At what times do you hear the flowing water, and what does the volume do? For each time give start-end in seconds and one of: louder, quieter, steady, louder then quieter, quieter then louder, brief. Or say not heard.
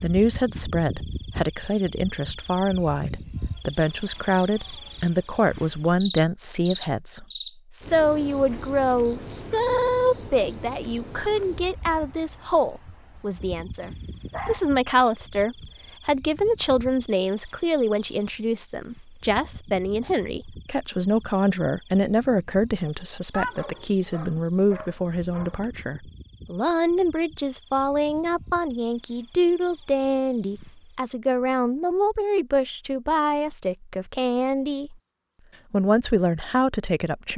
not heard.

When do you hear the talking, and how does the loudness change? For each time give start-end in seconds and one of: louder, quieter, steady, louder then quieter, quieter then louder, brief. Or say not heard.
0.0-35.0 steady
35.7-37.3 brief.